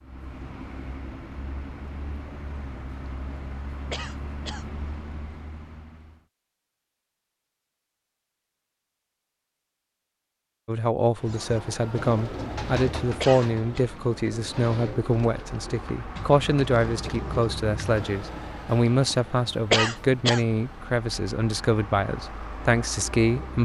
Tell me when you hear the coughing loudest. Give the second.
20 s.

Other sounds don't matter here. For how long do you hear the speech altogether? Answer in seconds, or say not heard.
13 s.